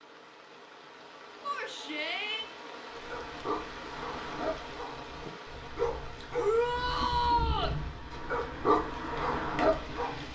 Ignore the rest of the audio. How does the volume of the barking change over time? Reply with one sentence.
The volume of the barking goes up.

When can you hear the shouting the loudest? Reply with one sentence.
The volume of the shouting peaks at 7 seconds.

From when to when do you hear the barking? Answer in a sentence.
The barking can be heard from 2.9 to 10.3 s.